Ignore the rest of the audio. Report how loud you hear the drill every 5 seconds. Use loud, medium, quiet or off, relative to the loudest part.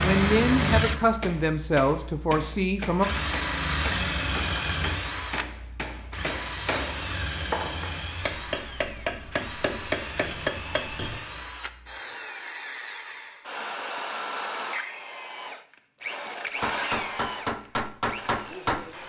loud, medium, medium, medium.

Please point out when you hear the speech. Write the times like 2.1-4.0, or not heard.
0.0-3.1.